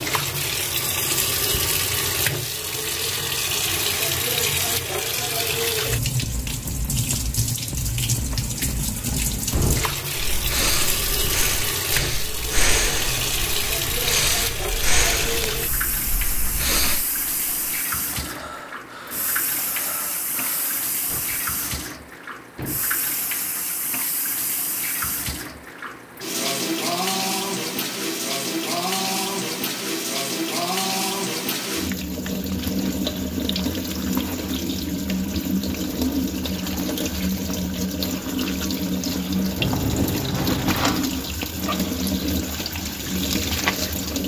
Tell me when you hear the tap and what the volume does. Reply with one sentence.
The tap can be heard from 0.0 to 44.2 s, getting quieter then louder.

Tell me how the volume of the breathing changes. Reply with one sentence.
The loudness of the breathing goes down.